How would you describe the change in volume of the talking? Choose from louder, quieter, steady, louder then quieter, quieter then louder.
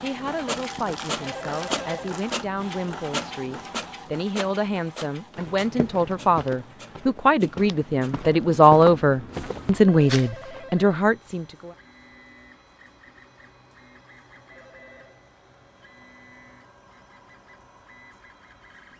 louder.